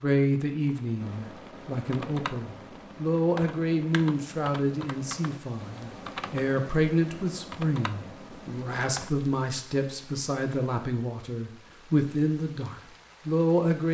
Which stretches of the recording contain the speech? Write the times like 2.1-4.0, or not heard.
0.0-13.8.